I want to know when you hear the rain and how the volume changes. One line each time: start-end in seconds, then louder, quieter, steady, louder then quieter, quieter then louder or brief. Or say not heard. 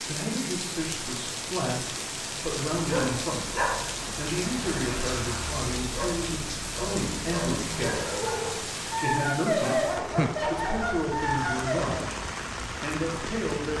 0.0-13.7 steady.